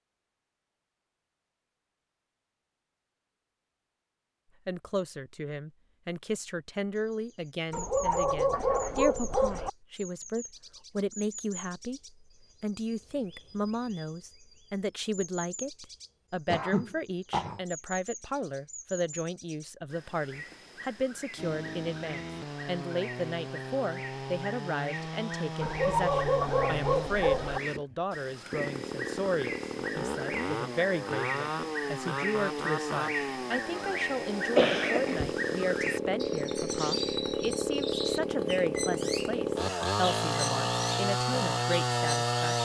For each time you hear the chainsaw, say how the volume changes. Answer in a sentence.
The chainsaw can be heard from 21.4 to 42.5 s, getting louder.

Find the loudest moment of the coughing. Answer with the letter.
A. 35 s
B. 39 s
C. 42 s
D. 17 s
A.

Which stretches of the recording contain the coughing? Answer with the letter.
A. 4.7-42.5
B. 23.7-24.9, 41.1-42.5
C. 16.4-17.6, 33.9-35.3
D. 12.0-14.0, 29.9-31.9
C.